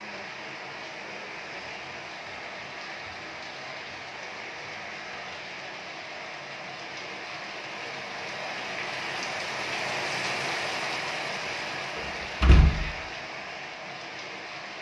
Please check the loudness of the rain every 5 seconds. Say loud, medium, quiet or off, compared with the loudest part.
medium, loud, loud.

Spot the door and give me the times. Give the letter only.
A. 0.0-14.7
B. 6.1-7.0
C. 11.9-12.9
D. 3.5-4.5
C.